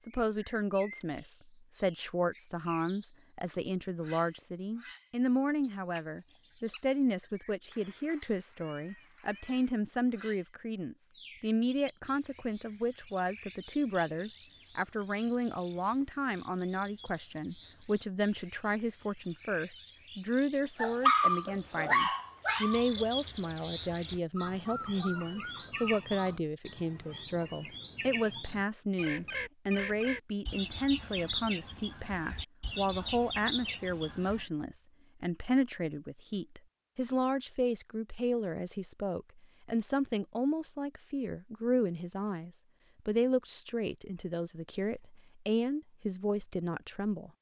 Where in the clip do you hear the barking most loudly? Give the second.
21 s.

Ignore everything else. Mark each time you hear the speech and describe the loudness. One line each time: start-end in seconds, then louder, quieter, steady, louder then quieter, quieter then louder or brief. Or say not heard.
0.1-47.3 steady.